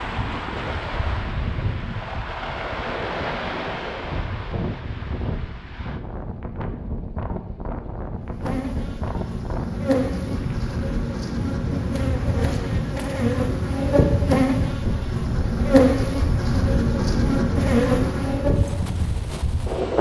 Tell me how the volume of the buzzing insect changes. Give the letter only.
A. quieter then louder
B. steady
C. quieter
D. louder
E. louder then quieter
D.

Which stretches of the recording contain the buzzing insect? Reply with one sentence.
You can hear the buzzing insect from 8.3 to 18.6 s.